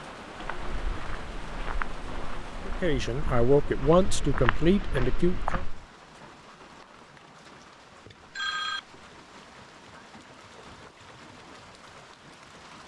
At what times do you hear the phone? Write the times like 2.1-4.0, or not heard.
8.3-9.0.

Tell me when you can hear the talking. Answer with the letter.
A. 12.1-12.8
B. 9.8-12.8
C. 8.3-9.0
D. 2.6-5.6
D.